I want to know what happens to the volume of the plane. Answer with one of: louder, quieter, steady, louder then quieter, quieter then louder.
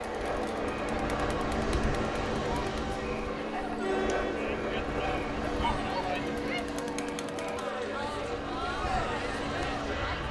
steady.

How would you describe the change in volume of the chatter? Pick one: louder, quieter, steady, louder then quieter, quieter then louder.
steady.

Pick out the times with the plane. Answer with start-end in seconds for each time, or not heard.
0.1-10.2.